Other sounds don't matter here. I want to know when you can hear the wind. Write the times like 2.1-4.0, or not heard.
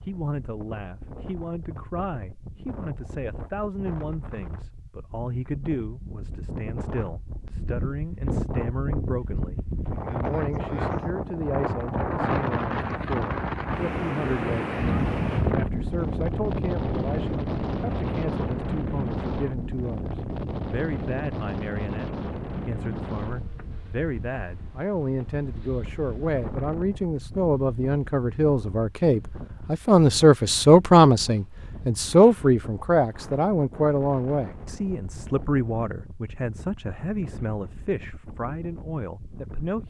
0.0-39.8.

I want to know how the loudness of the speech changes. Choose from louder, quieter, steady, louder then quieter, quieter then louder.
louder then quieter.